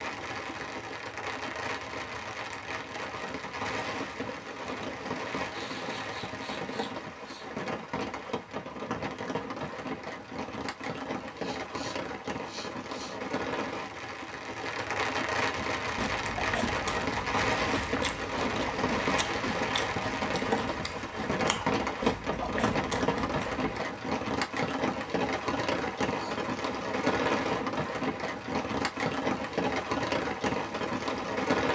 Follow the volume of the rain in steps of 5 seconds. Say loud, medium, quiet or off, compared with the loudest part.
medium, medium, medium, loud, loud, loud, loud.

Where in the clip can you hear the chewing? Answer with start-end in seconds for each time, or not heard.
15.6-23.8.